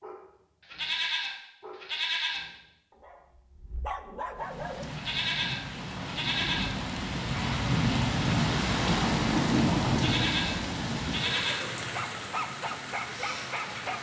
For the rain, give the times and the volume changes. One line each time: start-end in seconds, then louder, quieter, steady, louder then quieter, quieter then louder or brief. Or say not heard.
4.3-13.9 louder then quieter.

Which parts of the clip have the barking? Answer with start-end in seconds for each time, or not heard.
0.0-4.8, 11.8-13.9.